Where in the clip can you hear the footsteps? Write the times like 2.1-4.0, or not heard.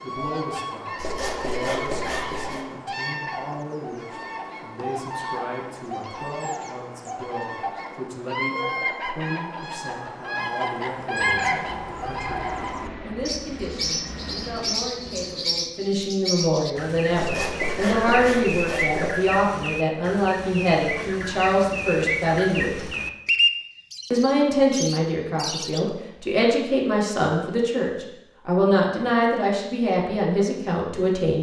not heard.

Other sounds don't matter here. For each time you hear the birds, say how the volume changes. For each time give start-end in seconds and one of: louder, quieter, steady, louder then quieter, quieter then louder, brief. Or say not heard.
0.0-25.9 louder.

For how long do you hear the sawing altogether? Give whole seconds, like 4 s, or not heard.
4 s.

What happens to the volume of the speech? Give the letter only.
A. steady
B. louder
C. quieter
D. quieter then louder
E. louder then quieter
B.